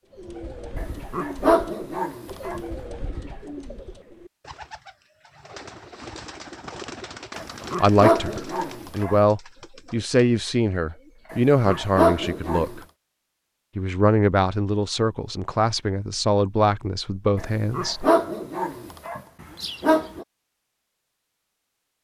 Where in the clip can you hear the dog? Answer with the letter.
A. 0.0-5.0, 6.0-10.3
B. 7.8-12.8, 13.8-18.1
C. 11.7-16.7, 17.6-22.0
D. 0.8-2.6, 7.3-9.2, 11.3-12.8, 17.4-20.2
D.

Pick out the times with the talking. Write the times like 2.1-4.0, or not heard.
7.8-12.8, 13.8-18.1.